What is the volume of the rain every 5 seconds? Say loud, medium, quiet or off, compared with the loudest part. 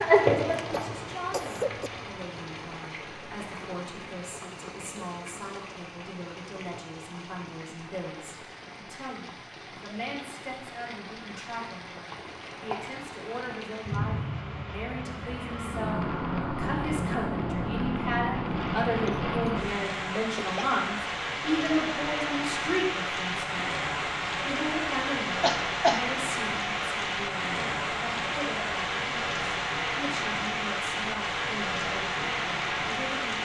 loud, quiet, medium, loud, loud, loud, loud.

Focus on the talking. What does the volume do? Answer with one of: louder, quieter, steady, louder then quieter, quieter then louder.
louder then quieter.